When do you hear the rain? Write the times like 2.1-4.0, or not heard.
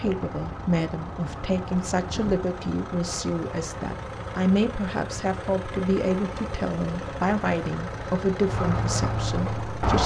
0.0-10.0.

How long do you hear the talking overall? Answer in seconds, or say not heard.
10 s.